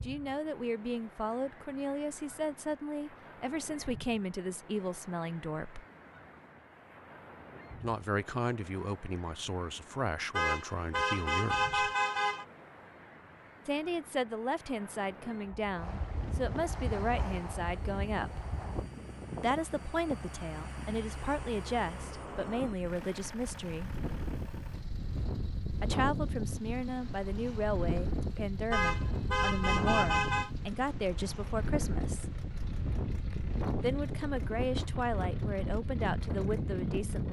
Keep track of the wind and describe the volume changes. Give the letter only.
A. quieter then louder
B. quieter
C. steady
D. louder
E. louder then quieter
D.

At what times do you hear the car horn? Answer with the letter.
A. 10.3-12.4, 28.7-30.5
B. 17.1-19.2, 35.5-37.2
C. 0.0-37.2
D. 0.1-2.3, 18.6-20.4
A.